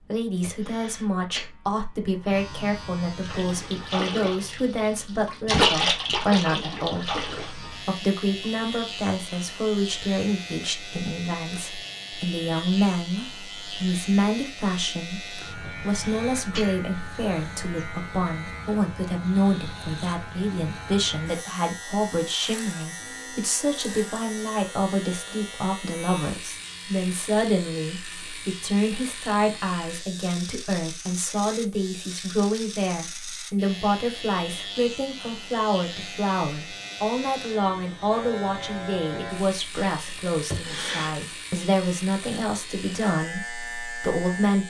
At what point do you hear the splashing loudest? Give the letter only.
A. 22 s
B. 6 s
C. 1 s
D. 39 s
B.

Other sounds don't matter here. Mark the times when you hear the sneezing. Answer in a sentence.
You can hear the sneezing from 0.4 to 1.5 s, from 15.6 to 16.8 s and from 40.5 to 41.2 s.